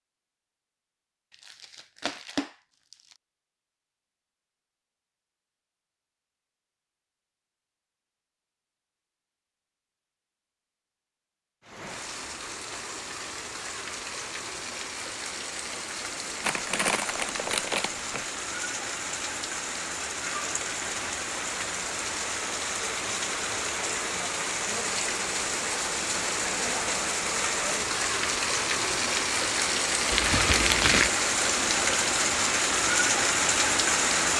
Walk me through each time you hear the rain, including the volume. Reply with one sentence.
You can hear the rain from 11.6 to 34.3 s, getting louder.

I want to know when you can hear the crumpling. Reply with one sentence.
You can hear the crumpling from 1.3 to 3.1 s, from 16.4 to 18.2 s and from 30.1 to 31.1 s.